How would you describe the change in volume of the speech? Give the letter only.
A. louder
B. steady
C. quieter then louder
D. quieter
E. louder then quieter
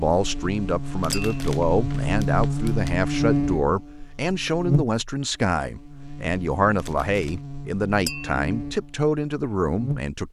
B.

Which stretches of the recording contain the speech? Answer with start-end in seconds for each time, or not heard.
0.0-10.2.